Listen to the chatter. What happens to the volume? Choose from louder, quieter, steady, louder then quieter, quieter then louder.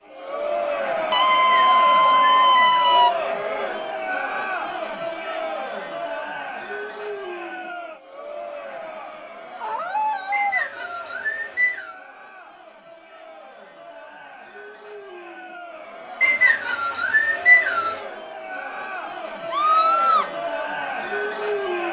quieter then louder.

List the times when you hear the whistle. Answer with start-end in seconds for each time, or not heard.
1.3-2.8, 10.3-11.9, 16.2-18.0.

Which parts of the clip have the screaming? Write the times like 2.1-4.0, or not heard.
1.1-3.1, 9.6-10.7, 19.5-20.3.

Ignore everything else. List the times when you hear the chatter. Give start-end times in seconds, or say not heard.
0.0-21.8.